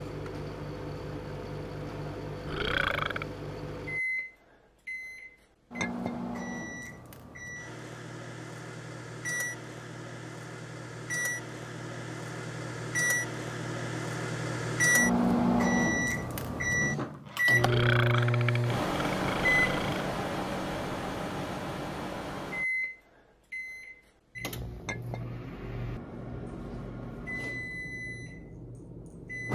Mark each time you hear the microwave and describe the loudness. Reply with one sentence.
The microwave can be heard from 0.0 to 29.5 s, getting louder then quieter.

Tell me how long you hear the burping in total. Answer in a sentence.
The burping can be heard for 3 seconds in total.